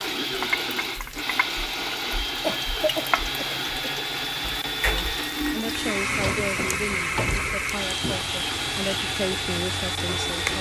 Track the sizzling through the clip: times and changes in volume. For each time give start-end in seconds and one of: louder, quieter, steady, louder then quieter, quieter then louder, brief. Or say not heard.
0.0-10.5 steady.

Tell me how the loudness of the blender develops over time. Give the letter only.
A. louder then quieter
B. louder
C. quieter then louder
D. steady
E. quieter
D.